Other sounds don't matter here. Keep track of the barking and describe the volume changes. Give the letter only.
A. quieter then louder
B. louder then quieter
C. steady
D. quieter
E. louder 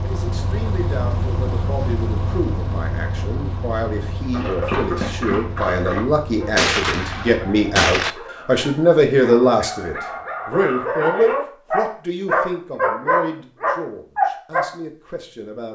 A.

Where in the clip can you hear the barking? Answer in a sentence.
You can hear the barking from 4.3 to 14.7 s.